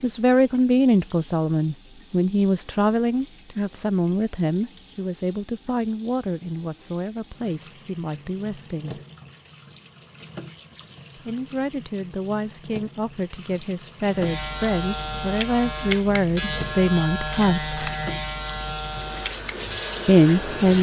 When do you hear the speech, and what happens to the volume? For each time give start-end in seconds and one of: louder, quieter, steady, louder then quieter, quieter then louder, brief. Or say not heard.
0.0-9.0 quieter
11.2-17.9 louder
20.1-20.7 brief.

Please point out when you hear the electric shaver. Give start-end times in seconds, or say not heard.
14.2-20.7.